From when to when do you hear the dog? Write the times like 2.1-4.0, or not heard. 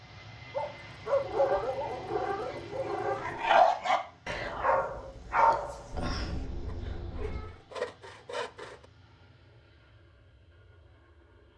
0.6-6.5.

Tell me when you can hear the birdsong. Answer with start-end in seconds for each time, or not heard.
not heard.